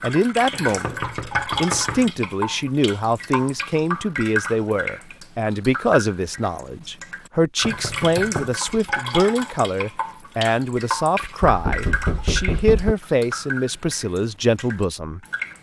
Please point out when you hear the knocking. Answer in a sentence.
You can hear the knocking from 0.5 to 2.1 s, from 7.6 to 8.6 s and from 11.4 to 12.9 s.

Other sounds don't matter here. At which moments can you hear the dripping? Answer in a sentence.
The dripping can be heard from 0.0 to 15.5 s.